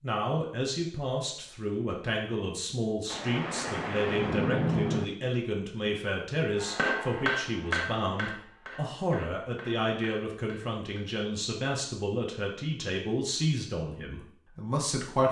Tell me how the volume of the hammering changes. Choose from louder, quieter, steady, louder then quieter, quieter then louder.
quieter.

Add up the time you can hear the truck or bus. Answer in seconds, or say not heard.
not heard.